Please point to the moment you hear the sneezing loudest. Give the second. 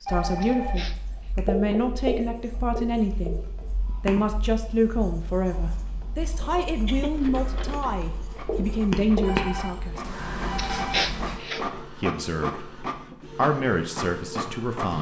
11 s.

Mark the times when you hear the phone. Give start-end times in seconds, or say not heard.
0.1-0.9, 9.2-11.1.